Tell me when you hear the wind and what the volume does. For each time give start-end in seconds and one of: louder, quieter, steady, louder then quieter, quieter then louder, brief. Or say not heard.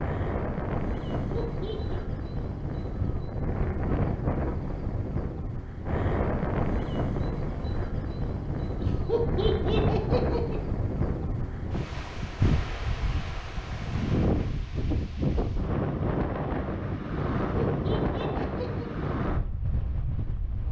0.0-20.6 steady.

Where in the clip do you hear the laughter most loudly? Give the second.
10 s.